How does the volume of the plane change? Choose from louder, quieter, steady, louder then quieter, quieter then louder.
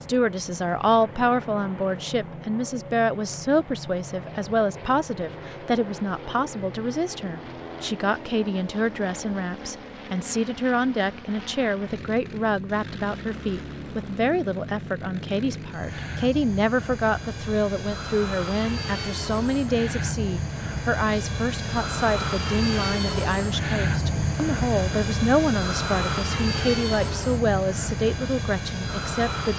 louder.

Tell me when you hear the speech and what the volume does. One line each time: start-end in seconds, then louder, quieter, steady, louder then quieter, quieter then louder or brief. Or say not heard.
0.0-29.5 steady.